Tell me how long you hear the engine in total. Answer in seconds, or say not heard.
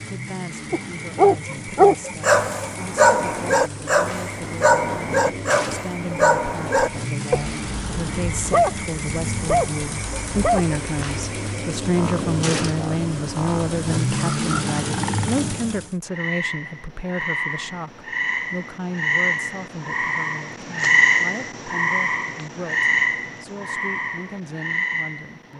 16 s.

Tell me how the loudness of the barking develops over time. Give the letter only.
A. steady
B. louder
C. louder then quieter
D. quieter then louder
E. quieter
E.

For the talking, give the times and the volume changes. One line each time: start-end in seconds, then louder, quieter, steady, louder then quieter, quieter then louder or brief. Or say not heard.
0.1-25.5 louder then quieter.